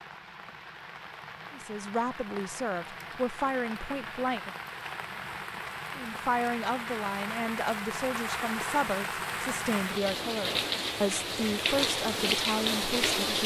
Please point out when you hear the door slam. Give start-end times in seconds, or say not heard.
not heard.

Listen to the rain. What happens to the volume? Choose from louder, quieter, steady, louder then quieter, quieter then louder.
louder.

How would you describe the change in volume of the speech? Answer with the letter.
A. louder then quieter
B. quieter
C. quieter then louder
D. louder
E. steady
E.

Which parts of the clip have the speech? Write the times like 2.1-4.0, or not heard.
1.5-4.5, 6.0-13.4.